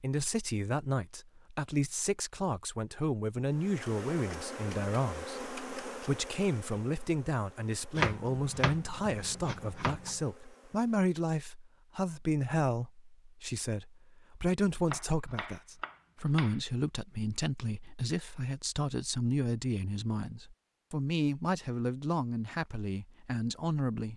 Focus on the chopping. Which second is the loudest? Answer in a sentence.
The volume of the chopping peaks at 8 seconds.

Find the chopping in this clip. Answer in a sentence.
You can hear the chopping from 8.0 to 10.2 s and from 14.8 to 16.6 s.